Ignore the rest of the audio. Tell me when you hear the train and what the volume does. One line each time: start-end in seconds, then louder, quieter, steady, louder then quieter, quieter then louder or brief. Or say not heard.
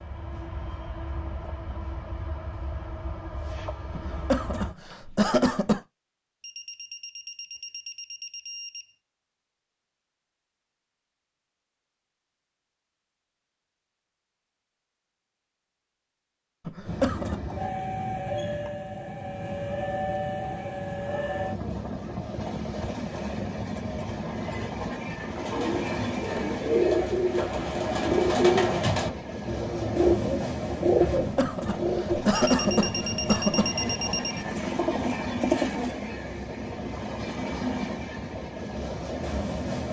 0.0-4.8 steady
16.8-39.8 steady.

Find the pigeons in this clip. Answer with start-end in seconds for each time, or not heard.
25.3-36.0.